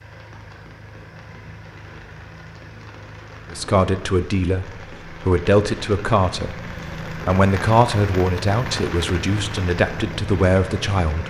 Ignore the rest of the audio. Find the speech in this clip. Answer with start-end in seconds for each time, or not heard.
3.5-11.2.